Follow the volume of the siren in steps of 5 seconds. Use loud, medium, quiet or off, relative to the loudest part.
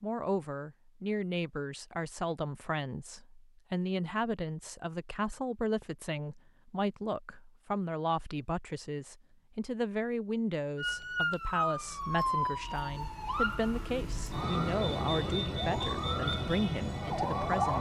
off, off, loud, loud.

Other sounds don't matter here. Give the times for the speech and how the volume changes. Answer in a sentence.
The speech can be heard from 0.0 to 17.7 s, at a steady volume.